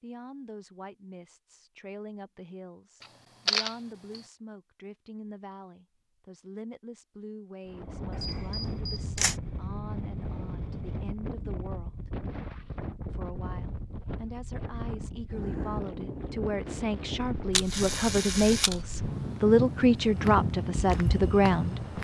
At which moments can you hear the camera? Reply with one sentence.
The camera can be heard from 3.0 to 4.2 s, from 8.1 to 9.3 s and from 17.5 to 18.8 s.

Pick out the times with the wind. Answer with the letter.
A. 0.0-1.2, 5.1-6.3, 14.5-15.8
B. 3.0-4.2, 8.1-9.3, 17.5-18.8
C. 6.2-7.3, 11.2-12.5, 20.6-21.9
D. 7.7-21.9
D.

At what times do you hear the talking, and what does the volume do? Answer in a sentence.
You can hear the talking from 0.0 to 12.1 s, at a steady volume; and from 13.1 to 21.9 s, getting louder.